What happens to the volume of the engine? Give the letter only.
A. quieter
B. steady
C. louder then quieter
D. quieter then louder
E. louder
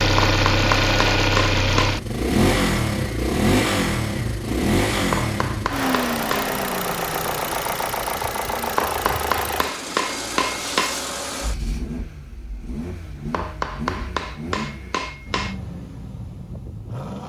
A.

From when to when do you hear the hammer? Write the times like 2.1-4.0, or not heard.
0.1-2.0, 5.1-6.5, 8.8-11.0, 13.3-15.6.